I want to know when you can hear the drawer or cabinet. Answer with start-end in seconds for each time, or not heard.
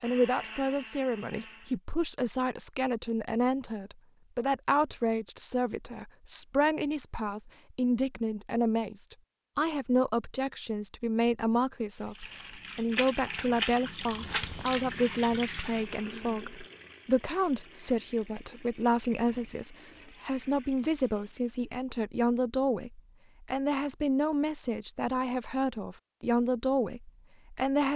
not heard.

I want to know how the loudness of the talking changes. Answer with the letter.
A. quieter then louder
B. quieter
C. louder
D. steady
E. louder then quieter
D.